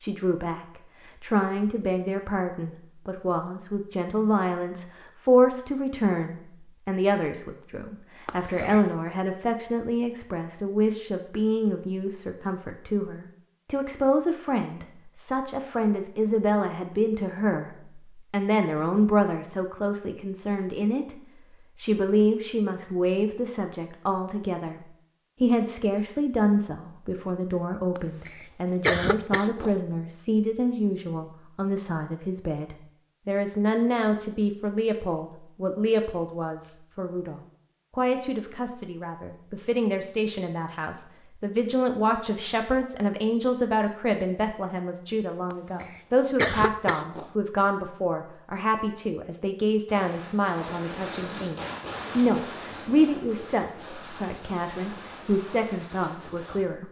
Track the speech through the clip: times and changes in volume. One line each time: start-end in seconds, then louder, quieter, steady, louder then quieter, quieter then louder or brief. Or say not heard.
0.0-56.8 steady.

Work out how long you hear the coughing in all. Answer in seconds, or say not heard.
4 s.